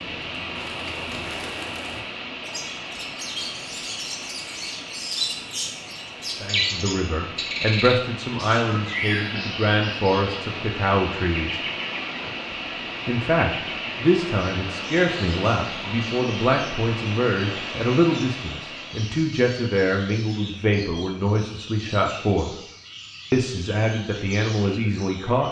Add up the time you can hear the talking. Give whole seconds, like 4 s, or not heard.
17 s.